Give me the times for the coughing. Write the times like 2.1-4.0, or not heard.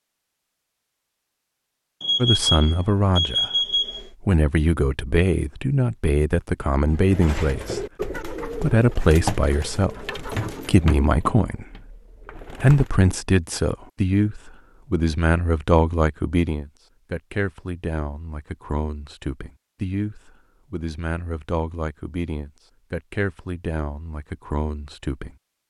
not heard.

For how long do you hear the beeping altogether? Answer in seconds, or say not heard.
2 s.